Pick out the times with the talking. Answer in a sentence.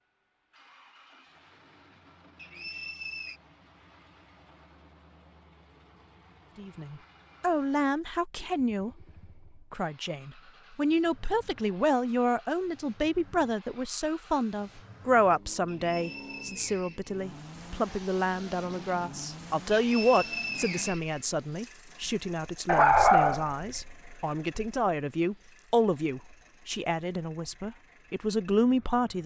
The talking can be heard from 6.5 to 8.9 s and from 9.7 to 29.2 s.